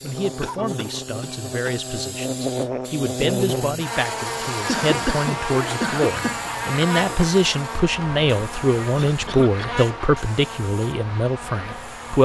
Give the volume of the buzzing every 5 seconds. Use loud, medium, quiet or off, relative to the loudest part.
loud, loud, medium.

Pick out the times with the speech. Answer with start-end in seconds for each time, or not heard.
0.0-12.2.